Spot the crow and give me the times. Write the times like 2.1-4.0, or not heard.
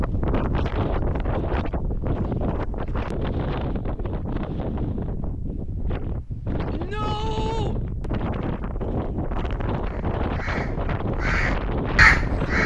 9.8-12.6.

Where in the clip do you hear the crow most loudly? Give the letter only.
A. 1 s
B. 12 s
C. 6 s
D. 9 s
B.